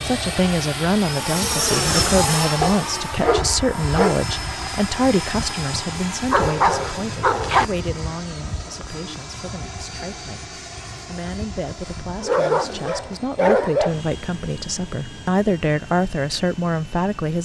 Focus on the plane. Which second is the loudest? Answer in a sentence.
The loudest moment of the plane is at 2 seconds.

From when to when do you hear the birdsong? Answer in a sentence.
You can't hear the birdsong here.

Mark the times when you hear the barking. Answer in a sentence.
The barking can be heard from 2.6 to 4.2 s, from 6.3 to 7.7 s and from 12.2 to 14.0 s.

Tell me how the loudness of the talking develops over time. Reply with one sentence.
The volume of the talking goes down, then up.